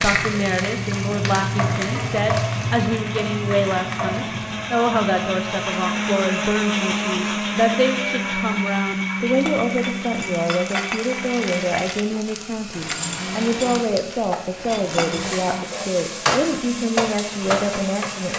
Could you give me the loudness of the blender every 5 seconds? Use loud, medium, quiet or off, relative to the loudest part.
medium, loud, medium, medium.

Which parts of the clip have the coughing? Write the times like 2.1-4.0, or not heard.
not heard.